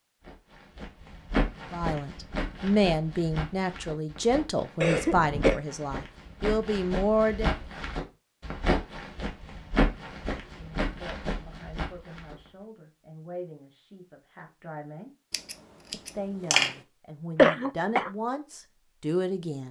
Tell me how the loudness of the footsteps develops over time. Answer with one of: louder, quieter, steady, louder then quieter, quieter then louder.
quieter then louder.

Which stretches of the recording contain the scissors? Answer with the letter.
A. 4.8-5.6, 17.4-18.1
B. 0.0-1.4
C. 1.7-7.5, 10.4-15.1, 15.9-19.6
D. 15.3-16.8
D.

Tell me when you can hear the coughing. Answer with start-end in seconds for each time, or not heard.
4.8-5.6, 17.4-18.1.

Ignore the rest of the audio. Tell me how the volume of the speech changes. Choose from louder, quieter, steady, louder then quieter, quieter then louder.
quieter then louder.